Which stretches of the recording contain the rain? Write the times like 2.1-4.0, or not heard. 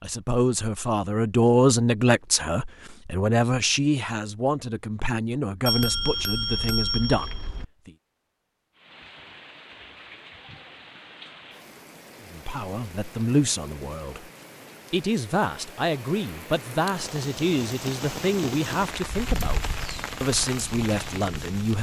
8.8-21.7.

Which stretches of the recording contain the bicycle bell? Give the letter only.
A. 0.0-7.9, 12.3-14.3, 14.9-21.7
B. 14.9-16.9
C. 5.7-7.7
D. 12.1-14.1
C.